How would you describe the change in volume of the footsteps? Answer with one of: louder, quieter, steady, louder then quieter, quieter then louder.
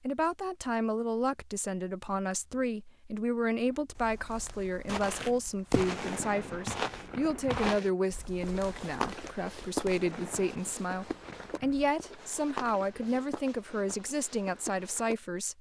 quieter.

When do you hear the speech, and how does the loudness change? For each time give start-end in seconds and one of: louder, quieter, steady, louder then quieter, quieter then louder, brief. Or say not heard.
0.0-15.5 steady.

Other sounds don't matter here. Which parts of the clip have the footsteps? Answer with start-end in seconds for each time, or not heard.
4.8-15.2.